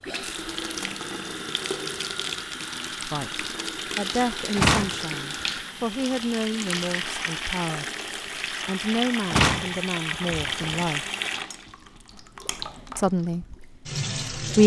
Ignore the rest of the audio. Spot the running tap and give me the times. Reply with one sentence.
You can hear the running tap from 0.0 to 14.6 s.